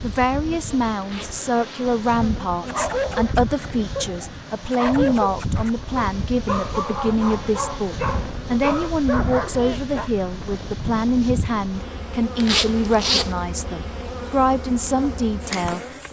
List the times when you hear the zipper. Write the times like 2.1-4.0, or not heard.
1.0-1.9, 12.3-13.3.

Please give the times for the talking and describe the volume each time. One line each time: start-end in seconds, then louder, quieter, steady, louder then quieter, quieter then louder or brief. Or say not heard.
0.0-16.0 steady.